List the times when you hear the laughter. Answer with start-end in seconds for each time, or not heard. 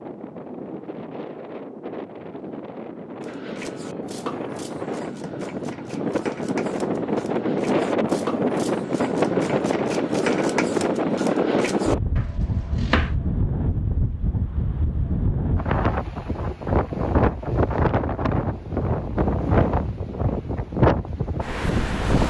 not heard.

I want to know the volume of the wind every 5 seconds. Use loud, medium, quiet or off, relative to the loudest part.
medium, loud, loud, loud, loud.